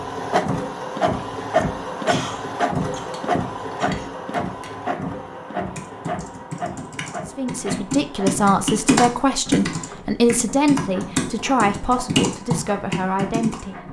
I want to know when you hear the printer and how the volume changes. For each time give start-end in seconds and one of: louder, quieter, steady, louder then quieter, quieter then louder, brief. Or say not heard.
0.0-13.8 quieter.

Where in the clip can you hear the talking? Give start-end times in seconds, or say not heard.
7.2-13.8.